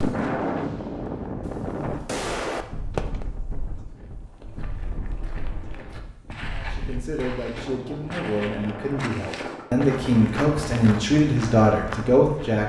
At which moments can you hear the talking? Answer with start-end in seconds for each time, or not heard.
6.5-12.6.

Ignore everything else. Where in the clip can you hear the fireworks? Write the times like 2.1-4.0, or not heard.
0.0-3.2.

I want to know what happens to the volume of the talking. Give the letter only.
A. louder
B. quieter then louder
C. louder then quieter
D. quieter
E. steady
A.